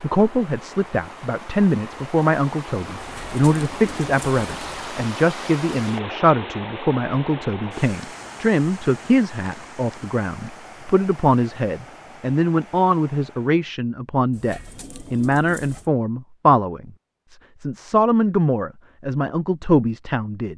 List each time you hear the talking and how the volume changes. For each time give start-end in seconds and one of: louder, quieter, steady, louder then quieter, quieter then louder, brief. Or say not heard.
0.0-20.5 steady.